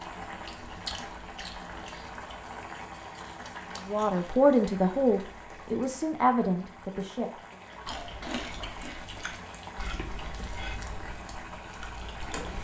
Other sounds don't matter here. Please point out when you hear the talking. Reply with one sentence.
The talking can be heard from 3.9 to 7.5 s.